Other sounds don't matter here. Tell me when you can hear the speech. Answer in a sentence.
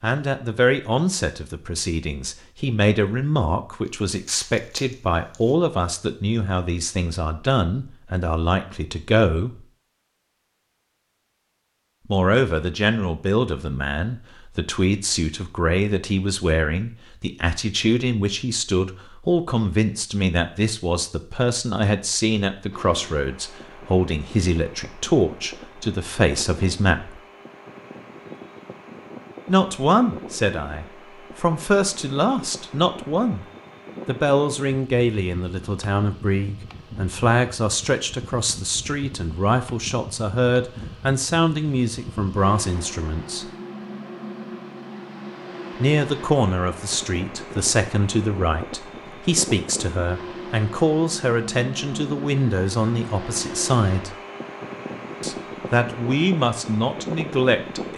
You can hear the speech from 0.0 to 9.7 s, from 12.1 to 27.2 s, from 29.4 to 33.5 s, from 34.0 to 43.5 s, from 45.8 to 54.1 s and from 55.2 to 57.9 s.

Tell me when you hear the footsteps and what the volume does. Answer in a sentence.
The footsteps can't be heard in this clip.